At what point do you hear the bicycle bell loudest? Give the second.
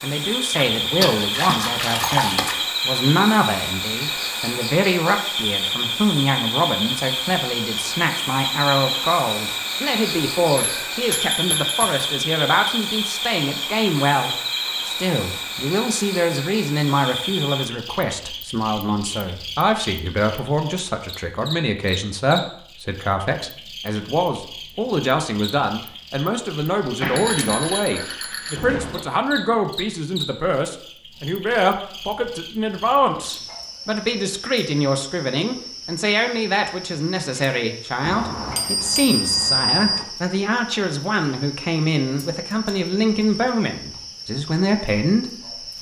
40 s.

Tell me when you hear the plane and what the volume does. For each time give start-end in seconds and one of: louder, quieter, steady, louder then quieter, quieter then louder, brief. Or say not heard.
not heard.